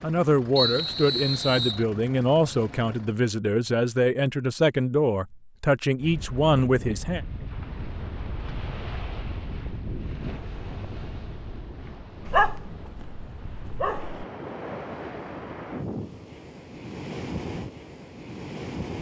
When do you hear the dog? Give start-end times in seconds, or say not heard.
12.2-14.2.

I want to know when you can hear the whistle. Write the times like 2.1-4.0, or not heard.
0.6-1.9.